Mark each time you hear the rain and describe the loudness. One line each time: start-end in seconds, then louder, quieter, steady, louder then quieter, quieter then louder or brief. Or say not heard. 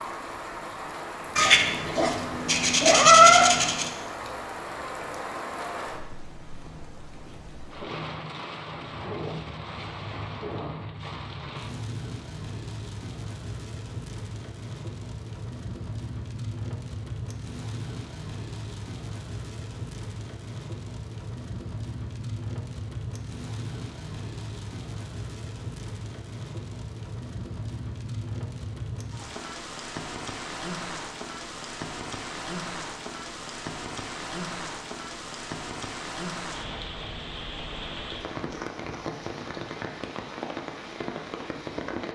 0.0-42.1 steady.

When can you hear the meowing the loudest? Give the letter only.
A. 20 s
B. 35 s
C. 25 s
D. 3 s
D.